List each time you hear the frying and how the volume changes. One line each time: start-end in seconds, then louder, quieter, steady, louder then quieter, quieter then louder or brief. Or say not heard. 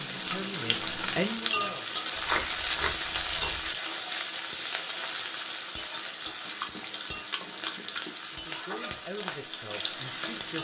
0.0-10.5 quieter.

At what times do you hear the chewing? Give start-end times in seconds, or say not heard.
2.1-3.7, 6.5-8.2.